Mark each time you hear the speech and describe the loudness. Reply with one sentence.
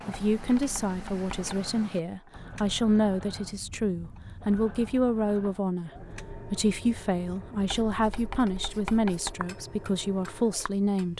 The speech can be heard from 0.1 to 11.1 s, at a steady volume.